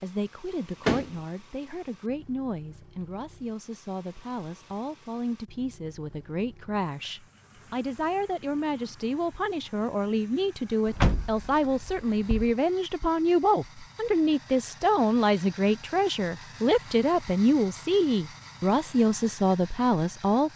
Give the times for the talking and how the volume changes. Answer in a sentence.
The talking can be heard from 0.0 to 20.5 s, getting louder.